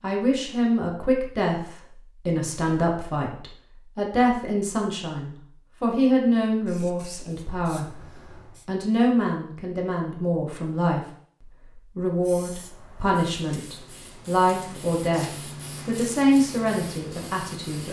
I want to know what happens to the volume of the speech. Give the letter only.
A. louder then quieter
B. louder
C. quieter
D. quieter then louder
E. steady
E.